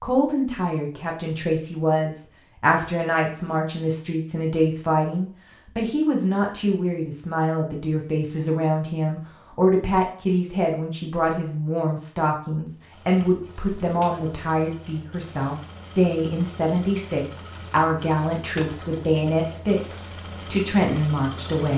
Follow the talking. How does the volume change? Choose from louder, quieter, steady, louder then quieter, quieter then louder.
steady.